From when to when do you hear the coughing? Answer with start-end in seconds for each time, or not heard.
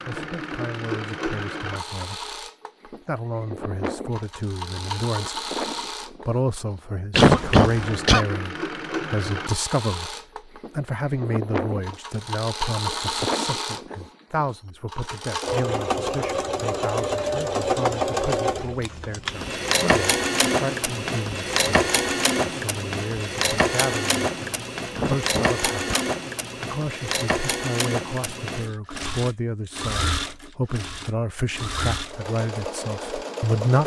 7.1-8.2, 24.9-26.1.